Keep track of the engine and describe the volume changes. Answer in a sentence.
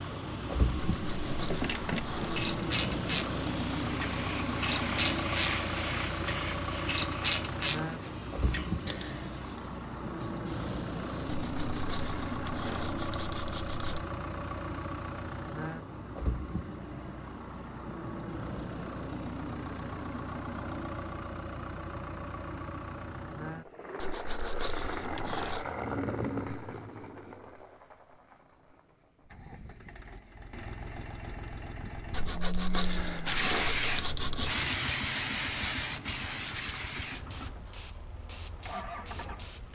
The loudness of the engine goes down.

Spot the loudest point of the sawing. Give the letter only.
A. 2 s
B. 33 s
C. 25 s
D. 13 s
B.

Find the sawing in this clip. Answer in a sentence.
You can hear the sawing from 0.9 to 2.5 s, from 11.2 to 14.1 s, from 24.0 to 25.7 s and from 32.1 to 34.5 s.